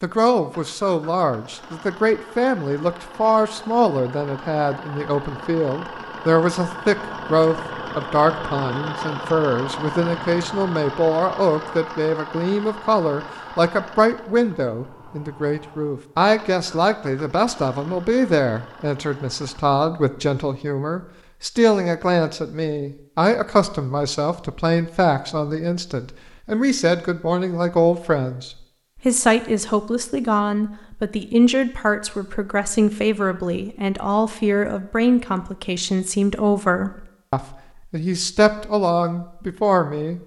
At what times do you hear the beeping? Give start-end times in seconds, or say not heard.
not heard.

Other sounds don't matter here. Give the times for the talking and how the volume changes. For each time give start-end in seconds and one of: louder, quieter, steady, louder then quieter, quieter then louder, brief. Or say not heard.
0.0-40.2 steady.